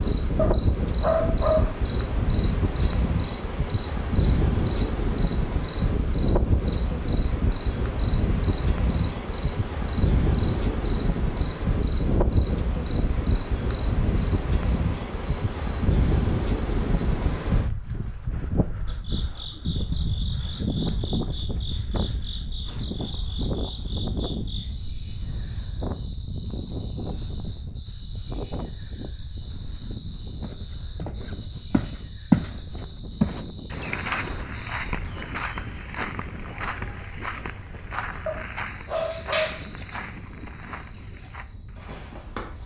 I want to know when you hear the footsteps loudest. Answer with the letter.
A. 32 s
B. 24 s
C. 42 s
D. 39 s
A.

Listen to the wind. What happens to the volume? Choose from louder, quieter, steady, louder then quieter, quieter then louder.
quieter.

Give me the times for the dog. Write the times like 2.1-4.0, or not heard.
0.3-1.8, 38.2-39.6.